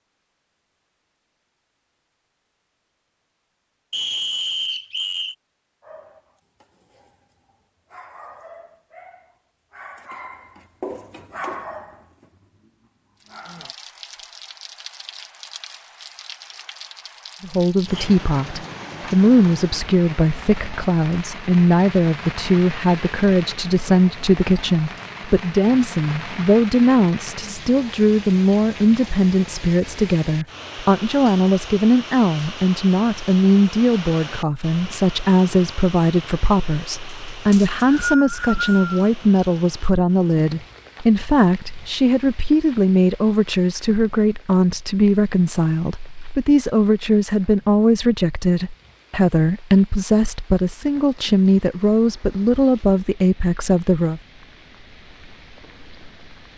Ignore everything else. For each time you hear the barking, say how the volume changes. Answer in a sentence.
You can hear the barking from 5.8 to 13.8 s, getting louder then quieter.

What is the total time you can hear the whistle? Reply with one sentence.
The whistle can be heard for 3 seconds in total.